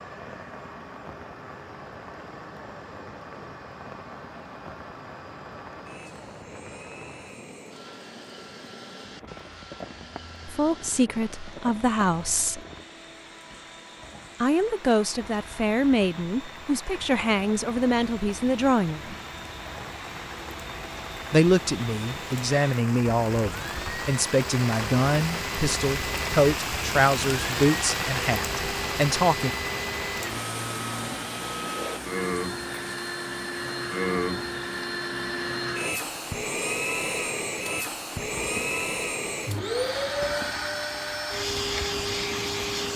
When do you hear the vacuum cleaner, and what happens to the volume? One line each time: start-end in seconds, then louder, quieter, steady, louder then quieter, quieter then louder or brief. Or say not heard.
0.0-42.9 louder.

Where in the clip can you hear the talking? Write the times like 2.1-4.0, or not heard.
10.4-12.6, 14.4-19.1, 21.3-29.5.